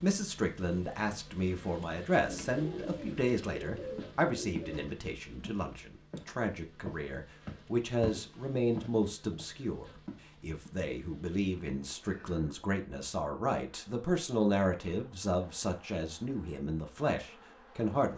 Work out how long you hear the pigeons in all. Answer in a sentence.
You can hear the pigeons for 3 seconds altogether.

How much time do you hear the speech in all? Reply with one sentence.
You can hear the speech for 18 seconds altogether.